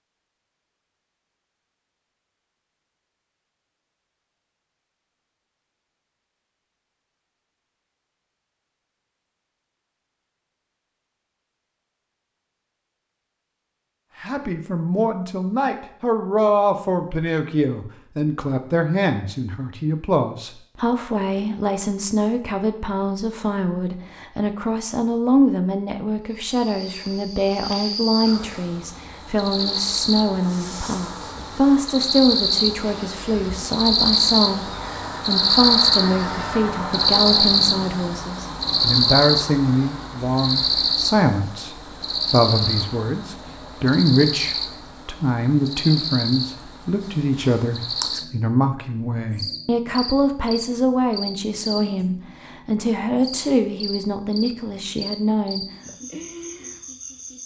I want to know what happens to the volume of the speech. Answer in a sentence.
The loudness of the speech stays about the same.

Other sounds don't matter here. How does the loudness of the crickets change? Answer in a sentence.
The volume of the crickets goes up, then down.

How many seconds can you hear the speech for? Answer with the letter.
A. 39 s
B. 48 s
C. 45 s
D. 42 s
D.